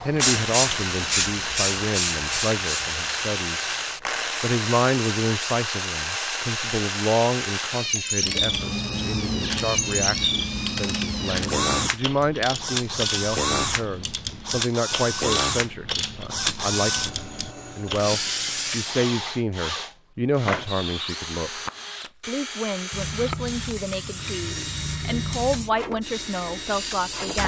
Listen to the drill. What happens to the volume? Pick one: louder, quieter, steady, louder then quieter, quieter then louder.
quieter.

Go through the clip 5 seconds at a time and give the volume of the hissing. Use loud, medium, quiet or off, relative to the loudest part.
loud, off, off, off, medium, medium.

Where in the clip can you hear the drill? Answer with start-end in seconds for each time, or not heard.
0.1-27.4.